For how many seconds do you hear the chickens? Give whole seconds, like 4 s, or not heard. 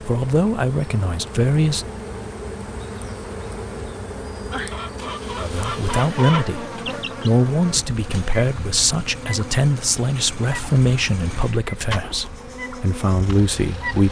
3 s.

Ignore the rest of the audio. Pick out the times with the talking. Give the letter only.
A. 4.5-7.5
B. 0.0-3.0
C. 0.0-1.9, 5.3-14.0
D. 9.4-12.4
C.